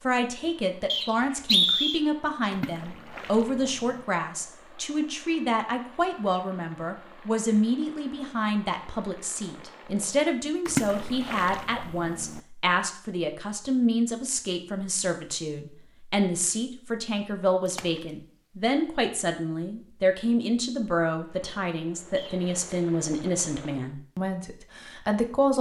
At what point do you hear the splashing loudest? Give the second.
11 s.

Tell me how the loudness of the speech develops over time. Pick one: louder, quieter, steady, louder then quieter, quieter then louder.
steady.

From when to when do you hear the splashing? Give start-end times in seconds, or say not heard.
2.5-4.0, 10.7-12.4, 17.6-18.1.